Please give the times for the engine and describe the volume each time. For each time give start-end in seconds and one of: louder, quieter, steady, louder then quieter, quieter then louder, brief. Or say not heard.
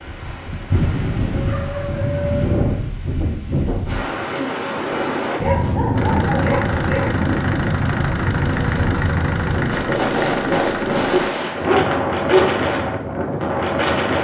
6.0-11.3 steady.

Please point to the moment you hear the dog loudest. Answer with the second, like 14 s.
12 s.